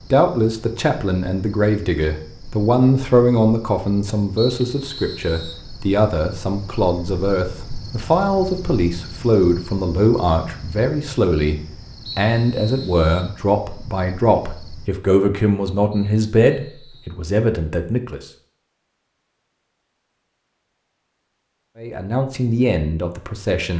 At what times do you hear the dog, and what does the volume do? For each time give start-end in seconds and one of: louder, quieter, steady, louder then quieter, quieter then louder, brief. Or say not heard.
not heard.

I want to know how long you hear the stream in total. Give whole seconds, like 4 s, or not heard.
not heard.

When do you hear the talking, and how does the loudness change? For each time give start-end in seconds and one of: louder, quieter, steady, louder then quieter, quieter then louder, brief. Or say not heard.
0.1-18.2 steady
21.8-23.7 brief.